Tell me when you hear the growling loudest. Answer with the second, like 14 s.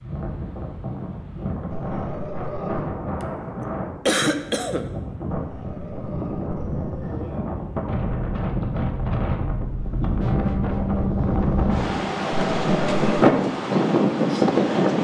13 s.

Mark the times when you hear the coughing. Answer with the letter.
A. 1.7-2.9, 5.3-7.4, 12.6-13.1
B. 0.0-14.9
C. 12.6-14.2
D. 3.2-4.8
D.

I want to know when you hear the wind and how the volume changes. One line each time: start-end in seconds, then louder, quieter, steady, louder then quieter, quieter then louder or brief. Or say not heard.
0.0-14.9 louder.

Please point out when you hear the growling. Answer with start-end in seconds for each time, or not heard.
1.7-2.9, 5.3-7.4, 12.6-13.1.